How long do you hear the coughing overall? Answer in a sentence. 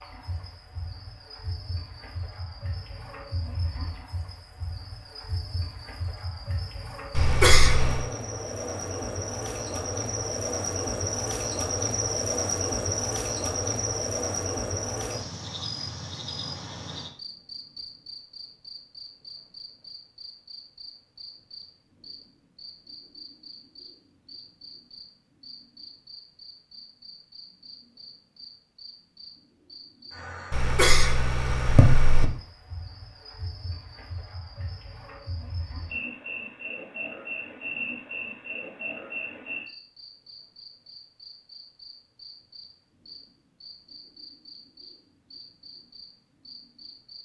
You can hear the coughing for 3 seconds altogether.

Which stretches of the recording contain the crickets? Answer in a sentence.
The crickets can be heard from 0.0 to 47.2 s.